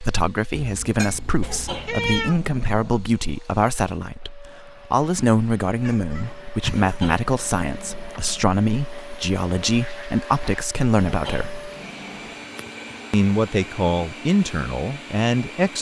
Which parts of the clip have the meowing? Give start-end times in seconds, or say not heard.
0.6-2.4, 5.8-7.0, 12.6-13.2.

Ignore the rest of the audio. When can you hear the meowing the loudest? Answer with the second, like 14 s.
2 s.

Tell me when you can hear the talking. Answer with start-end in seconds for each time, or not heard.
0.0-11.7, 13.1-15.7.